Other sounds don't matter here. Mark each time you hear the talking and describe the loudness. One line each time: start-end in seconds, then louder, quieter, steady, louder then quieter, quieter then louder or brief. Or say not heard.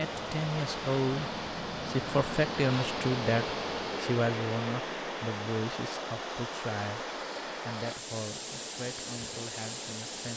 0.0-10.3 quieter.